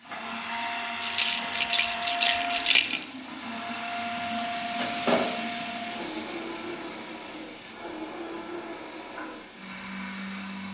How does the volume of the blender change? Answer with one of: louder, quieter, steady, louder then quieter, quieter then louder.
quieter.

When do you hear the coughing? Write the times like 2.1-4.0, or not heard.
not heard.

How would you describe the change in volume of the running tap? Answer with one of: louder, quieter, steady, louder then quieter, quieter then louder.
louder then quieter.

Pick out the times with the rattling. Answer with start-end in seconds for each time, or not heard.
1.0-3.0.